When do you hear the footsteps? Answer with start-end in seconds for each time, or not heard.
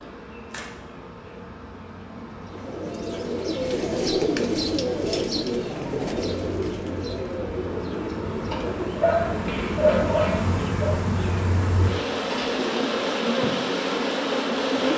not heard.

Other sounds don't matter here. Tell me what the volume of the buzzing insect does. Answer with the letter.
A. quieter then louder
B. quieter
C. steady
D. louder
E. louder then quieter
D.